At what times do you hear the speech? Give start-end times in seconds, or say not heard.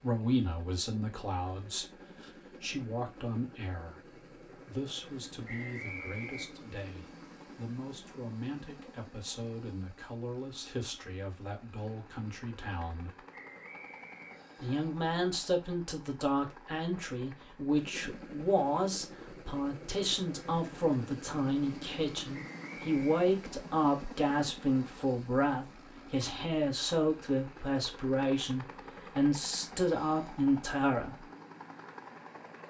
0.0-13.2, 14.6-31.2.